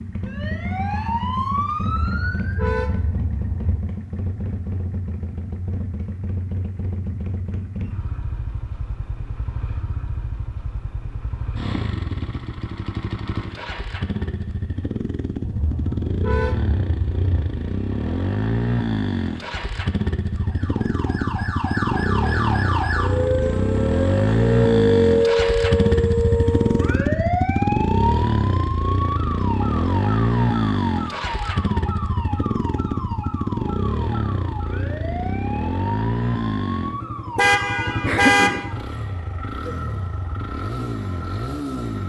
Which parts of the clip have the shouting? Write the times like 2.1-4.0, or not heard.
not heard.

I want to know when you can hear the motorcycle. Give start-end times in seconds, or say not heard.
0.0-42.0.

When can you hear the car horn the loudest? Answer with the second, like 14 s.
38 s.